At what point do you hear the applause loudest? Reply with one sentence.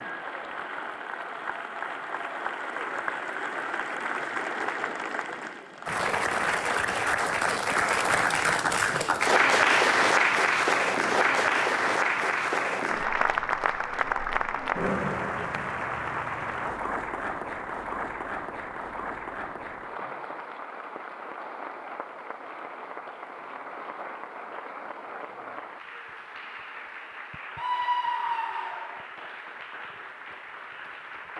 The volume of the applause peaks at 10 seconds.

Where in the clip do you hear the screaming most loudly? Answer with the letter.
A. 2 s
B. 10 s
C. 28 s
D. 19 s
C.